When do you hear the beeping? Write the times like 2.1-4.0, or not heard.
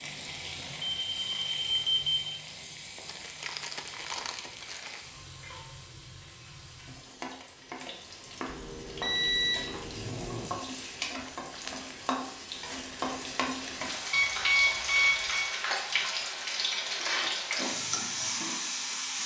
0.8-2.1, 8.4-10.5, 14.1-15.5.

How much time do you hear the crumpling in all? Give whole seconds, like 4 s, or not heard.
3 s.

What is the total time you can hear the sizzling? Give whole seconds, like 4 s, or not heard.
19 s.